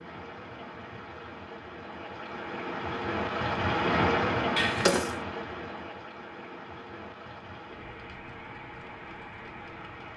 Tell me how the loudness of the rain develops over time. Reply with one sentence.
The loudness of the rain goes up, then down.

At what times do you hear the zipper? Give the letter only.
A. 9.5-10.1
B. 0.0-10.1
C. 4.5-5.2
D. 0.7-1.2
C.